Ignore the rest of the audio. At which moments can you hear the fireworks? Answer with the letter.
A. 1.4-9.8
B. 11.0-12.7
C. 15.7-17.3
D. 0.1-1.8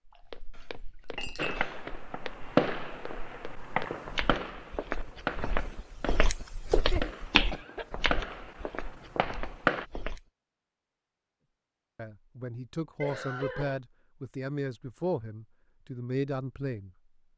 A.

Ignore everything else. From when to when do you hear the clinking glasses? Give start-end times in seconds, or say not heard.
0.1-1.8.